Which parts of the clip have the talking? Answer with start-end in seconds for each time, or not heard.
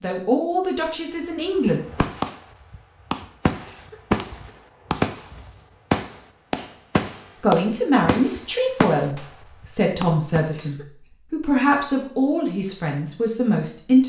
0.0-1.8, 7.4-14.0.